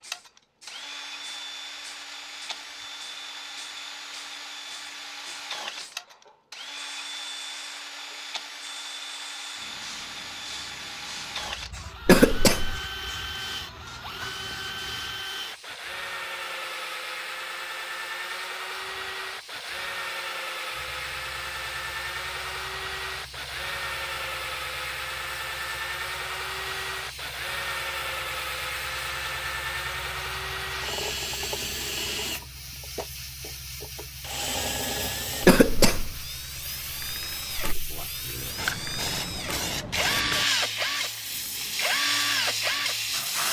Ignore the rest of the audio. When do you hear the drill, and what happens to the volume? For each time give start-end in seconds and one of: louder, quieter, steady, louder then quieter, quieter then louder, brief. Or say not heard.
0.0-43.4 louder.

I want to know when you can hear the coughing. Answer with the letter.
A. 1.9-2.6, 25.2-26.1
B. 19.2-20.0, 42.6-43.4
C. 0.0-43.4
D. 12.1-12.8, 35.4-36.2
D.